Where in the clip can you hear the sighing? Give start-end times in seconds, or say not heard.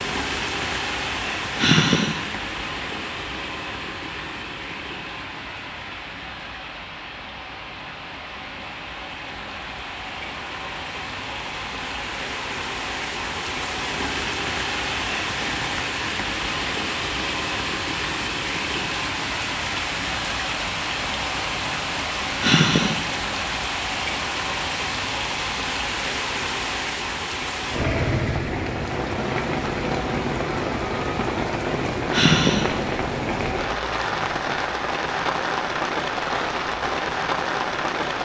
1.6-2.2, 22.4-23.1, 32.1-32.8.